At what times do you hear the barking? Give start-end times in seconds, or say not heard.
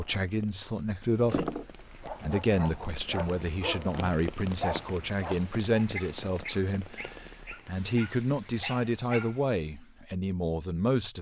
1.1-9.3.